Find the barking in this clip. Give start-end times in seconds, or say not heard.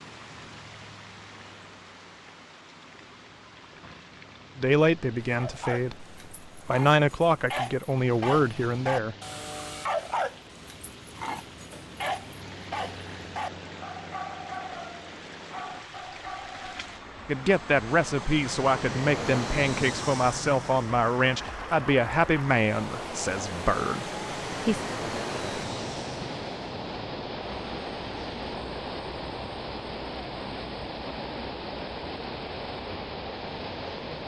5.2-16.9.